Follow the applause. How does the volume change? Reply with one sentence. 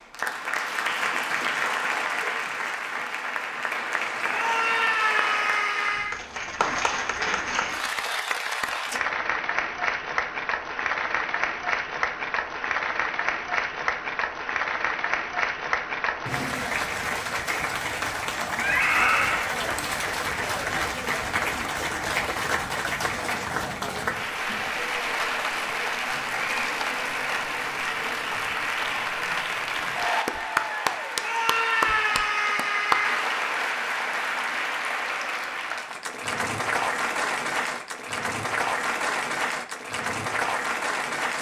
The volume of the applause stays about the same.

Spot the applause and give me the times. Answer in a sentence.
The applause can be heard from 0.0 to 41.3 s.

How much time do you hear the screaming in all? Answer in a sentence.
You can hear the screaming for 5 seconds altogether.